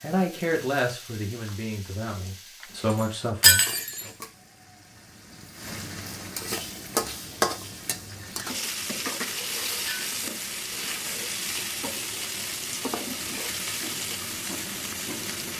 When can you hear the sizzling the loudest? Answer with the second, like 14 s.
7 s.